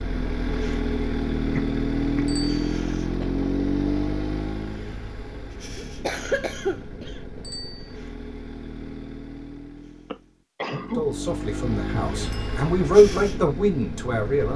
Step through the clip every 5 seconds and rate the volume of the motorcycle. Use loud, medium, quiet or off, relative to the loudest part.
loud, quiet, medium.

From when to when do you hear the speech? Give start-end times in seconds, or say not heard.
10.9-14.5.